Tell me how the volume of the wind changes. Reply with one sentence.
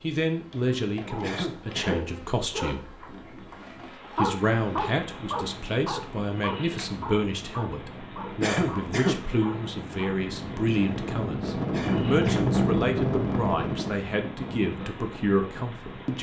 The loudness of the wind goes up, then down.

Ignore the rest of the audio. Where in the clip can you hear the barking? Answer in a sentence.
You can hear the barking from 0.9 to 10.2 s.